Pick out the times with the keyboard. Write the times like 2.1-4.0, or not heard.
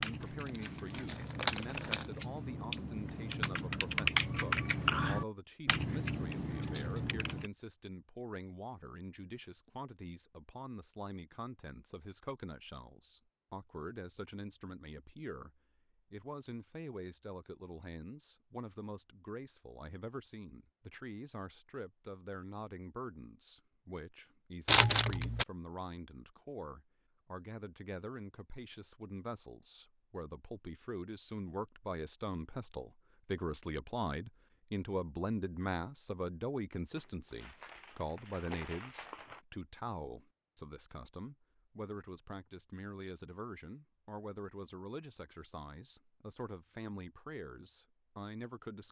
0.0-7.5.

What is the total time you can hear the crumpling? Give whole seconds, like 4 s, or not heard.
5 s.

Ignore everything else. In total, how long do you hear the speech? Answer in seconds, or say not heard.
48 s.